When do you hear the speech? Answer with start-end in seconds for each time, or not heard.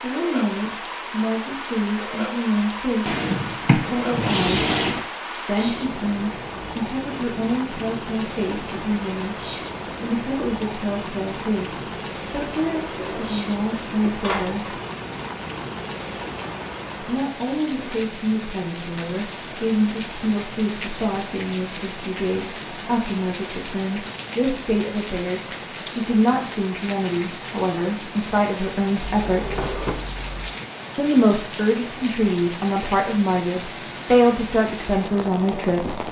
0.0-4.7, 5.5-9.4, 10.0-14.8, 17.0-29.6, 30.9-36.0.